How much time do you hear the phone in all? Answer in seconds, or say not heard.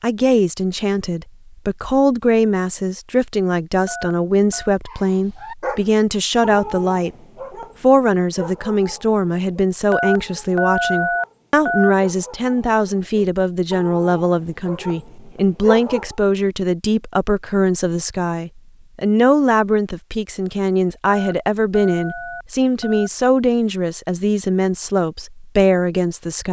5 s.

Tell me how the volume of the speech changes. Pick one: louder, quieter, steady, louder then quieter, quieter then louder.
steady.